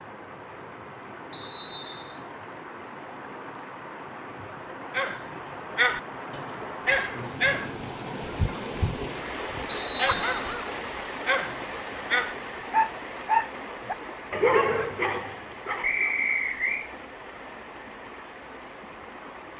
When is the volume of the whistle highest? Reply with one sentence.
The loudest moment of the whistle is at 16 seconds.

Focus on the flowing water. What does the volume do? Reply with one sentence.
The loudness of the flowing water goes up, then down.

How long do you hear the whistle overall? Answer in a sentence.
You can hear the whistle for 3 seconds altogether.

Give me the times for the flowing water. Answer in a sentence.
The flowing water can be heard from 0.0 to 19.5 s.